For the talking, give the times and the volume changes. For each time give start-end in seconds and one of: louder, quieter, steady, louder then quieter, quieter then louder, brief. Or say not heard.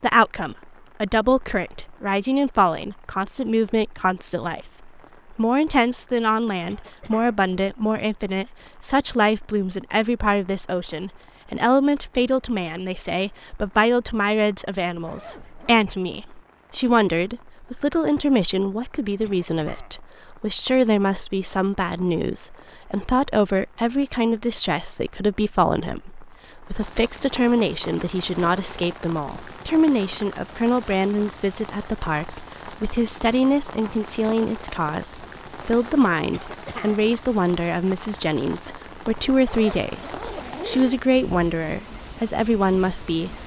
0.0-43.4 steady.